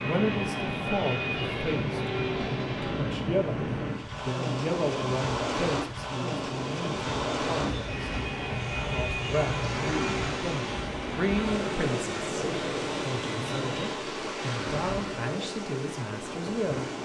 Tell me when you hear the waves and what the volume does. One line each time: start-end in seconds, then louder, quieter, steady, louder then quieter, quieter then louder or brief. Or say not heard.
0.0-16.9 steady.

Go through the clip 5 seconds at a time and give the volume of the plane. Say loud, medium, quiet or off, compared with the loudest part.
loud, loud, loud, off.